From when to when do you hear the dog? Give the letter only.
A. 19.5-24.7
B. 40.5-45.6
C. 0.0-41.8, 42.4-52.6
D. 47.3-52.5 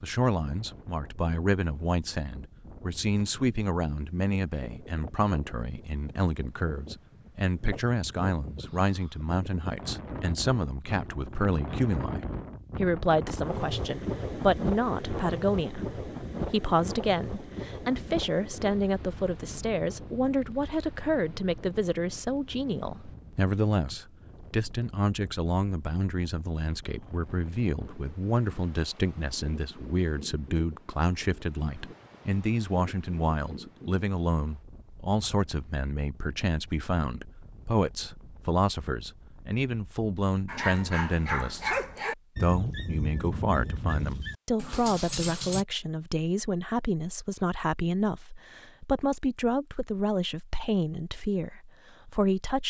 B.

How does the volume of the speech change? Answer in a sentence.
The volume of the speech stays about the same.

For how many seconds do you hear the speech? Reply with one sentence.
You can hear the speech for 52 seconds altogether.